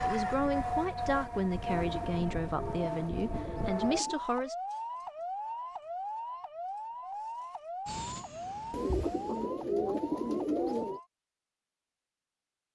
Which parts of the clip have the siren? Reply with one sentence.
You can hear the siren from 0.0 to 11.1 s.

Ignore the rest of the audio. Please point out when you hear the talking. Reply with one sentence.
The talking can be heard from 0.0 to 4.5 s.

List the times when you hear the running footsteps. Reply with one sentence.
The running footsteps can't be heard in this clip.